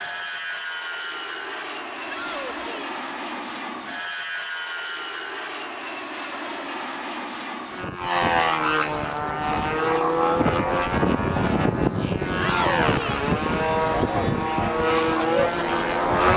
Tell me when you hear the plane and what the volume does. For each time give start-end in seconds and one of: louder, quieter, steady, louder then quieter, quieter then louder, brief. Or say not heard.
0.0-16.3 louder.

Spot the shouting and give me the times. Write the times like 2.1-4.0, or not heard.
2.0-3.0, 12.3-13.2.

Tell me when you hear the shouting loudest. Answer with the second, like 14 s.
13 s.